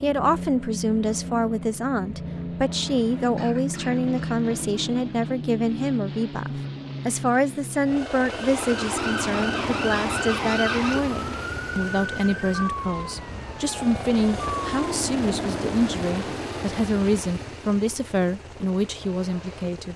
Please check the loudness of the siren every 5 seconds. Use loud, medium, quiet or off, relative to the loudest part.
off, loud, loud, off.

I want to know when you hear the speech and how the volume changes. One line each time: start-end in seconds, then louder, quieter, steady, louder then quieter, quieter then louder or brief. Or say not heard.
0.0-19.9 steady.